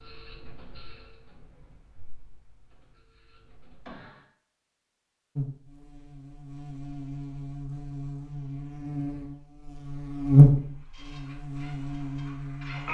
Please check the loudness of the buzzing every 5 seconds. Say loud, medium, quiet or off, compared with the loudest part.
off, quiet, loud.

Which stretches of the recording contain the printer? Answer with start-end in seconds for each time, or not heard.
0.0-4.2, 10.6-12.9.